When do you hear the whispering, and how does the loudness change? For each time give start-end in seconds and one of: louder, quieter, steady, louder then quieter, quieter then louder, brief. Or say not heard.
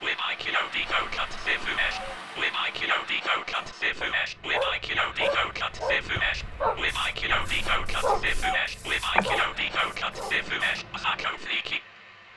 0.0-11.8 steady.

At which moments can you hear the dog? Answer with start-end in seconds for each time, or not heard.
3.5-10.8.